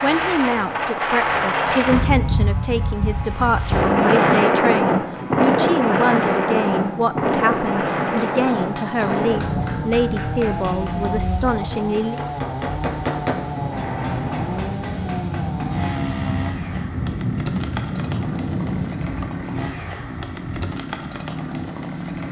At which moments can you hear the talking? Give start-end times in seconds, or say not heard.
0.0-12.2.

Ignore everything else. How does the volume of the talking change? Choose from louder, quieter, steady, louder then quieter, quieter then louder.
steady.